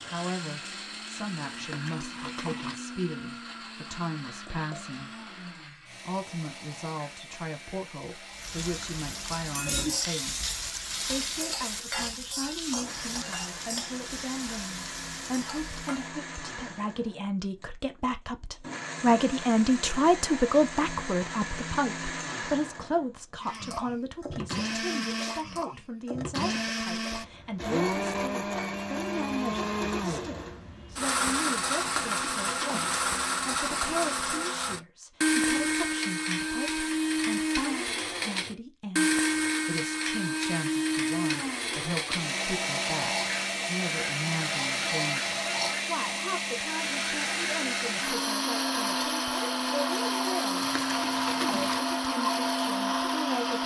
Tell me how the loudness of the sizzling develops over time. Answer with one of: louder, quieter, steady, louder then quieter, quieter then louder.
quieter.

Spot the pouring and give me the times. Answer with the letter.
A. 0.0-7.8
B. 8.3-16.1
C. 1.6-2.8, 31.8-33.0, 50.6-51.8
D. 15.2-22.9
C.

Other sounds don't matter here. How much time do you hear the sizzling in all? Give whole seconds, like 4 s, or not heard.
8 s.